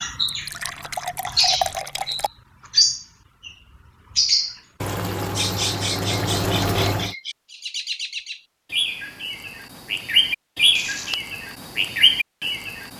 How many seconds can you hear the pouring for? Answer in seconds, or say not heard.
5 s.